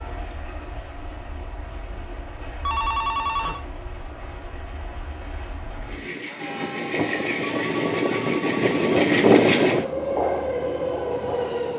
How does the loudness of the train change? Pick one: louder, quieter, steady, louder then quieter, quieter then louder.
louder.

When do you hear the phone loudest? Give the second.
3 s.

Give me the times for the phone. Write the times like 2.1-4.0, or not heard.
2.6-3.6, 7.4-8.9.